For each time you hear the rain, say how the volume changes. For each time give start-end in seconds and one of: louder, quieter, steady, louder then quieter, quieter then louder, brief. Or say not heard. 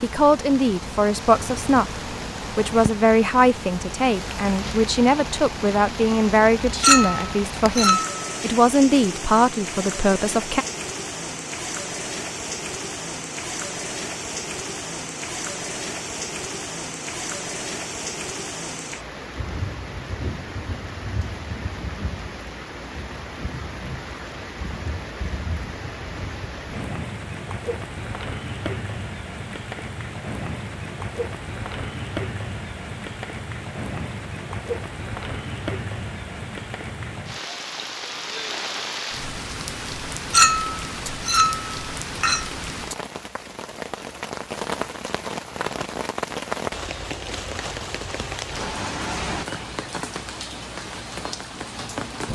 0.0-52.2 steady.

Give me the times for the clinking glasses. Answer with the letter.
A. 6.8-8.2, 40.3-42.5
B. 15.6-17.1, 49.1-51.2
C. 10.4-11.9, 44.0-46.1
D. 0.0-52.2
A.